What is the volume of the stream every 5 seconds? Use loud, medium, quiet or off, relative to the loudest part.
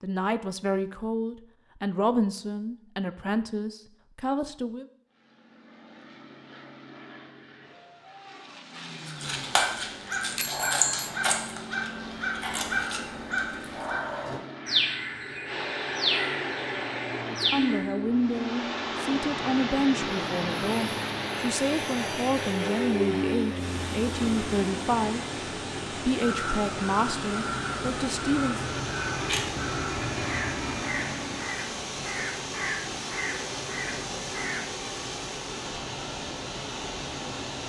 off, off, off, loud, loud, loud, loud, loud.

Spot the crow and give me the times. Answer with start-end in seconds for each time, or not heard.
9.1-18.0, 26.1-34.6.